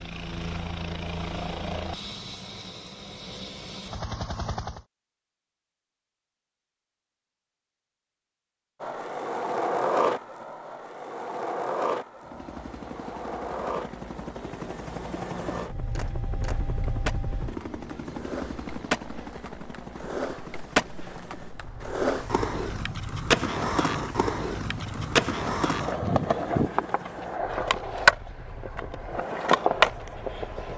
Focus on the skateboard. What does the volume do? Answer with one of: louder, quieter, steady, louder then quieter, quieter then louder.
quieter then louder.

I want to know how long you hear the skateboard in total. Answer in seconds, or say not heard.
22 s.